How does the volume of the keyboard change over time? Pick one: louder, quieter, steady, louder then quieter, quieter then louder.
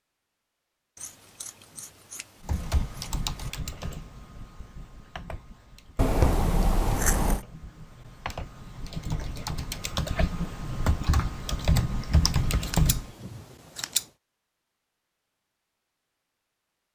quieter then louder.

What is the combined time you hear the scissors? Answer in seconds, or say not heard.
6 s.